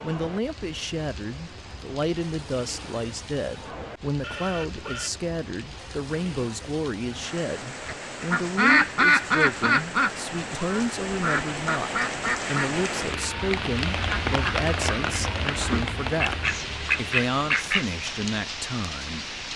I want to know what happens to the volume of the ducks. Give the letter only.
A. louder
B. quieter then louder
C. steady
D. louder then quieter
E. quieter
B.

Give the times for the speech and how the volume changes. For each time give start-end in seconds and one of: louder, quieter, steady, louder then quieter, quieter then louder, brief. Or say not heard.
0.0-16.4 steady
16.9-19.3 brief.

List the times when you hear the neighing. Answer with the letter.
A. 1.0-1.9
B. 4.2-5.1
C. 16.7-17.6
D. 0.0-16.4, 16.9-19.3
B.